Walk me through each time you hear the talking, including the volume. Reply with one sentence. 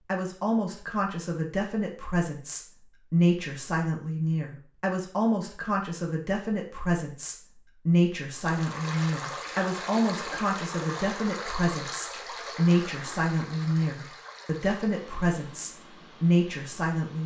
The talking can be heard from 0.1 to 17.2 s, at a steady volume.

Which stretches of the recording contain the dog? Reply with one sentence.
The dog can't be heard in this clip.